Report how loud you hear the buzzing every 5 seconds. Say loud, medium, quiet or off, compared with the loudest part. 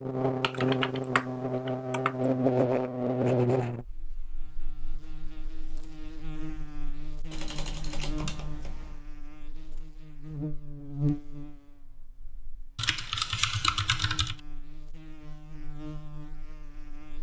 loud, quiet, medium, quiet.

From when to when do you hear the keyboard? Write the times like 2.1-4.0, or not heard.
0.4-2.1, 7.3-9.0, 12.8-14.3.